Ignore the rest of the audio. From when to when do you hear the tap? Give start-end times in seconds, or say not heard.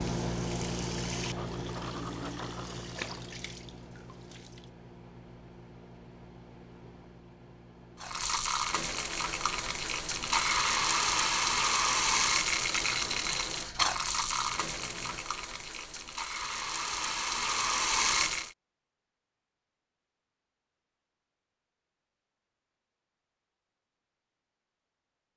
0.0-4.4, 8.0-18.5.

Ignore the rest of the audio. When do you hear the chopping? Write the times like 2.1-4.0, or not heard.
not heard.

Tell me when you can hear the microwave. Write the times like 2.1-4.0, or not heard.
0.0-15.2.